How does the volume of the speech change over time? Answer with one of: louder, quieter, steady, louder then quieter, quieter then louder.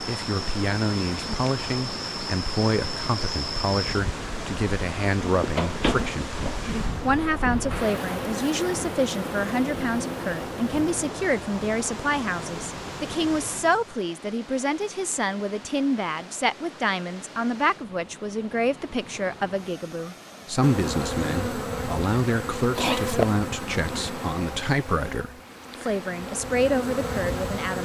steady.